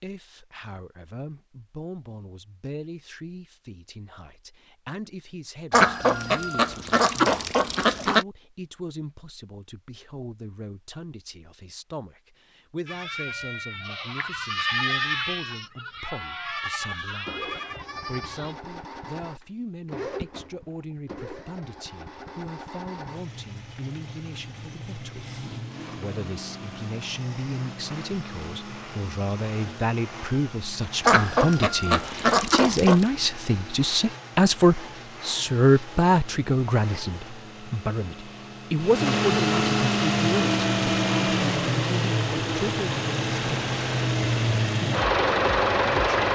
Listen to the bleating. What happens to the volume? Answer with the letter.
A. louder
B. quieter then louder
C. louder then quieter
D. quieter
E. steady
C.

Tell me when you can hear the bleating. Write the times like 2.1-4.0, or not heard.
12.8-18.6.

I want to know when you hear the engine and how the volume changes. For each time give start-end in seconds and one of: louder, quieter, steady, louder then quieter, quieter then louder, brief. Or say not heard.
17.2-46.3 louder.